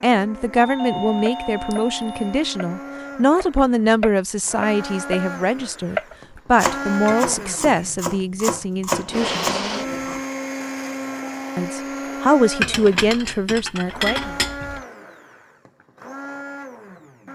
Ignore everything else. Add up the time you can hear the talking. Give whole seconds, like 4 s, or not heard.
12 s.